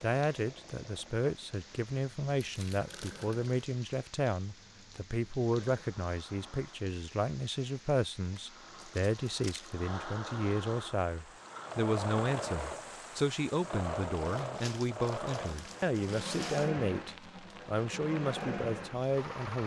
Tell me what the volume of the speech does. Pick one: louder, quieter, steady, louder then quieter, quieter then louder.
steady.